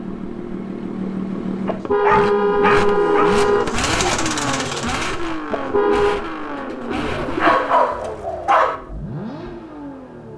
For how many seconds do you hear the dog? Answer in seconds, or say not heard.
3 s.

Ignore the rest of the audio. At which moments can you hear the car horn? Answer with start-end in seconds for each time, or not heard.
1.6-3.6, 5.5-6.2.